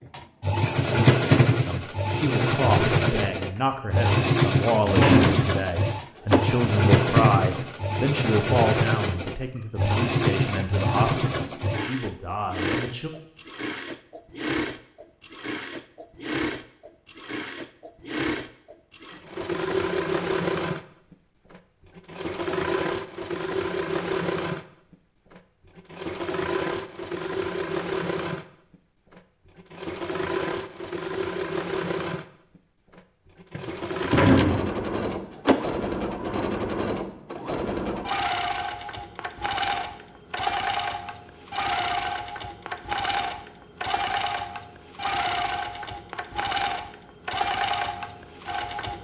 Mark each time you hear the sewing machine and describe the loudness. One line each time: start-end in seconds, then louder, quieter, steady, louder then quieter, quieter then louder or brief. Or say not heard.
0.1-48.9 quieter.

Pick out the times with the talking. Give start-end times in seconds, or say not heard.
1.6-13.1.